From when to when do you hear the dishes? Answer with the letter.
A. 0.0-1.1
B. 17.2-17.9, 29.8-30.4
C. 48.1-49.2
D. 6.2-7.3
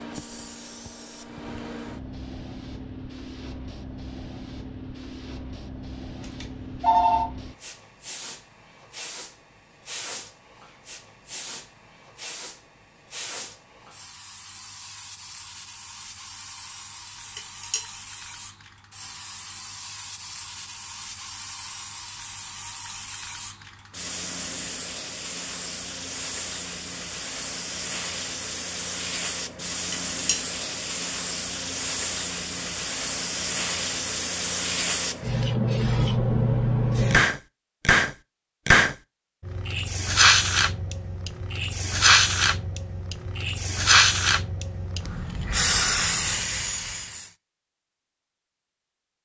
B.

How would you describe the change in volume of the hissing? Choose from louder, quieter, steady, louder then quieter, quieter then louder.
louder.